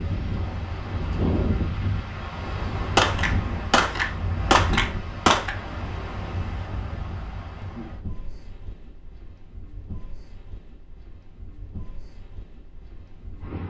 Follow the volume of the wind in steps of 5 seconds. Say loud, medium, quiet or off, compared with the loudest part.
loud, medium, quiet.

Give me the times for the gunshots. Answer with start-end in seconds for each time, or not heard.
3.0-5.5.